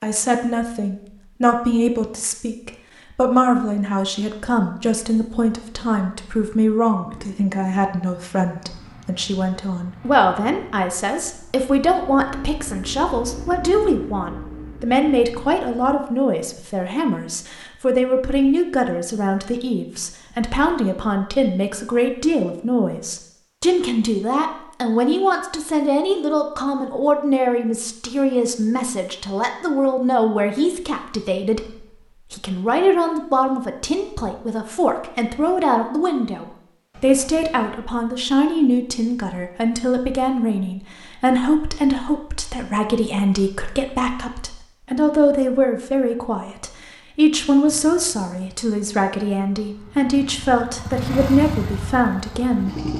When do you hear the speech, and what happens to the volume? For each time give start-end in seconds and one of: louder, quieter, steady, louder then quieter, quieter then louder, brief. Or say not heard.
0.0-52.8 steady.